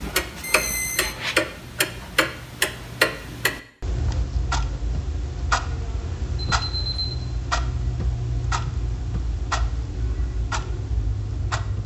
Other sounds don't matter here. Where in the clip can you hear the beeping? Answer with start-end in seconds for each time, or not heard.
0.4-1.1, 6.5-7.2.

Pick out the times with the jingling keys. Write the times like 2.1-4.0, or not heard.
not heard.